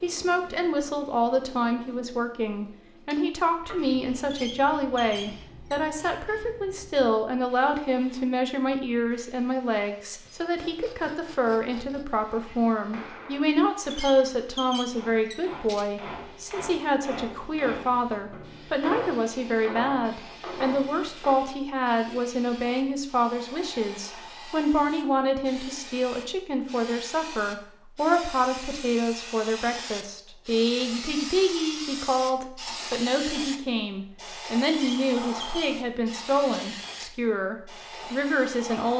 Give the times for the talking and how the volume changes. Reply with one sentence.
You can hear the talking from 0.0 to 38.9 s, at a steady volume.